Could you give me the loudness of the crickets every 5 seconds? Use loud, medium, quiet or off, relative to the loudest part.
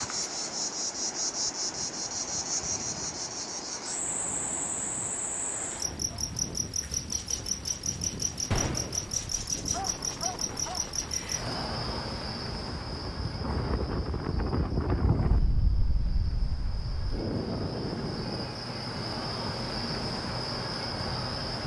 loud, loud, loud, medium, loud.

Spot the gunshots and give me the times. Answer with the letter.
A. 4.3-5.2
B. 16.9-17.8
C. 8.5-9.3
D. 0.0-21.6
C.